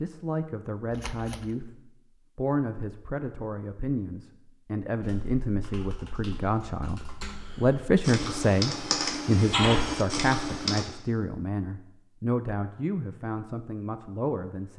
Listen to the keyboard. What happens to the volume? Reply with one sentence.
The loudness of the keyboard goes up.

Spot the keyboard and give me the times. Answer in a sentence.
The keyboard can be heard from 5.0 to 10.8 s.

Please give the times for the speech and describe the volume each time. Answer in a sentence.
You can hear the speech briefly from 0.0 to 1.8 s; and from 2.4 to 14.7 s, getting louder then quieter.